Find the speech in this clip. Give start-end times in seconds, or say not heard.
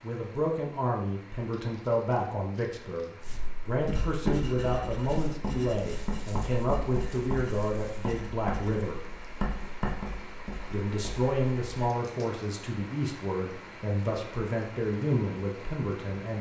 0.0-9.0, 10.7-16.3.